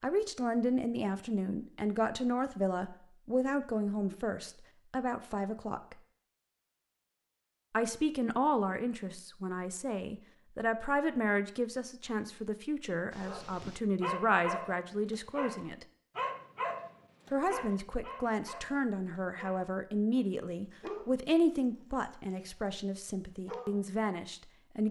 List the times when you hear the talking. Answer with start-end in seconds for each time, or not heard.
0.0-6.0, 7.7-15.8, 17.3-24.8.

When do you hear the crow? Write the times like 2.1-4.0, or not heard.
not heard.